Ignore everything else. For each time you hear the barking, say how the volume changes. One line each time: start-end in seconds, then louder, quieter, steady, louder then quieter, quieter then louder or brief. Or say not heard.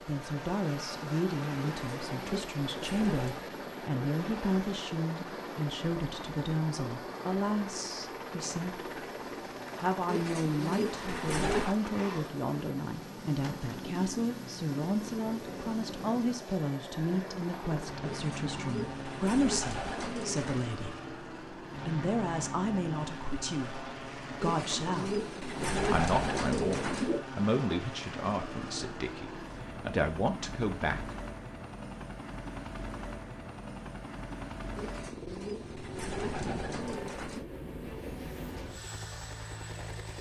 not heard.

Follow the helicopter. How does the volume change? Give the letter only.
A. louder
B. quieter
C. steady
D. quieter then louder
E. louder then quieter
C.